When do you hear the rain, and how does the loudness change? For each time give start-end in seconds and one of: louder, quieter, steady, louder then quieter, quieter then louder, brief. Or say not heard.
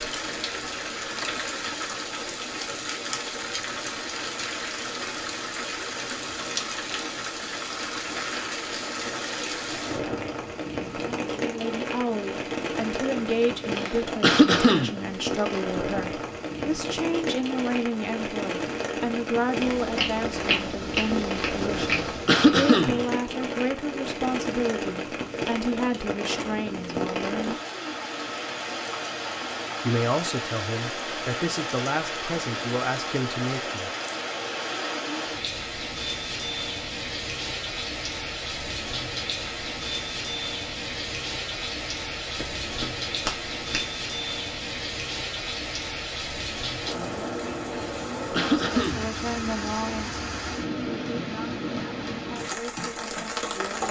0.0-53.8 steady.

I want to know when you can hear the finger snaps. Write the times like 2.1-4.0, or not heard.
19.6-22.4, 42.4-43.9.